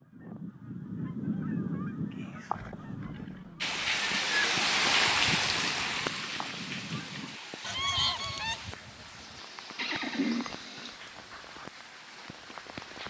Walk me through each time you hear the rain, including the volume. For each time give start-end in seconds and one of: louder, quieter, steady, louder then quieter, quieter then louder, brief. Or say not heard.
3.6-13.0 quieter.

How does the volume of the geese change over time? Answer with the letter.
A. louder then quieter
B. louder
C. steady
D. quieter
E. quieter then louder
E.